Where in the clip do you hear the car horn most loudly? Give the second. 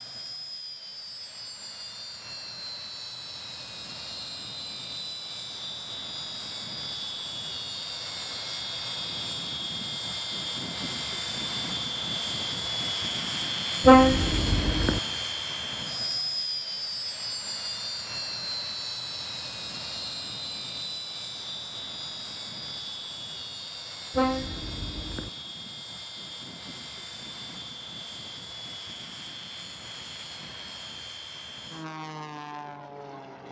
14 s.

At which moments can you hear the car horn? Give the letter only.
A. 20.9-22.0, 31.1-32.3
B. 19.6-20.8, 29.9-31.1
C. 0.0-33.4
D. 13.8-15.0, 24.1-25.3
D.